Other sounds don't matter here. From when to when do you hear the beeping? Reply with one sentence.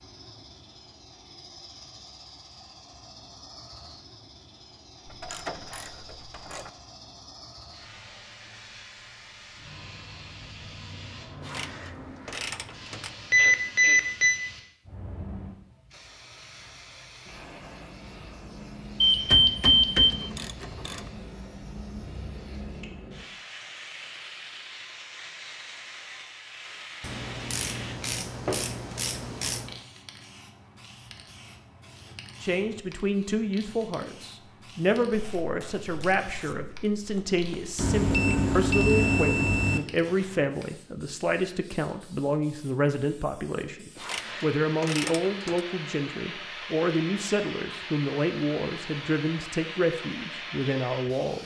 The beeping can be heard from 13.3 to 14.4 s, from 19.0 to 20.1 s and from 37.8 to 39.8 s.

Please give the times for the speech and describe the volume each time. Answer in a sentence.
You can hear the speech from 32.4 to 51.4 s, at a steady volume.